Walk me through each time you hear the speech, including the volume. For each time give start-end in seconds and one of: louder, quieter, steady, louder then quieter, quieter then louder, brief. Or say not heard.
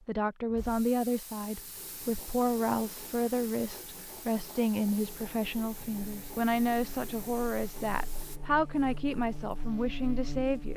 0.1-10.7 steady.